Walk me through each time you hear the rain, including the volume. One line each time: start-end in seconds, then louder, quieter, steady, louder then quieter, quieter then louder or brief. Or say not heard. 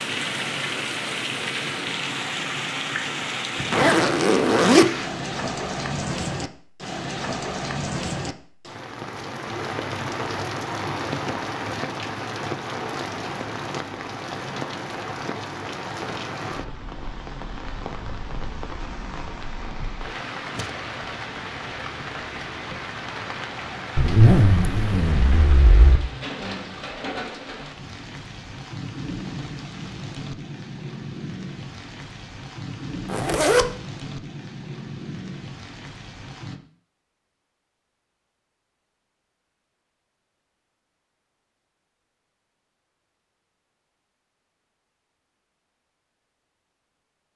0.0-36.6 quieter.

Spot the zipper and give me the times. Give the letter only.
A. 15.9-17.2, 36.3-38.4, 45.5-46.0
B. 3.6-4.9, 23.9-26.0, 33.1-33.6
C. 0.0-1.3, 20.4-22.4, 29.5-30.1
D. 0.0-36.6
B.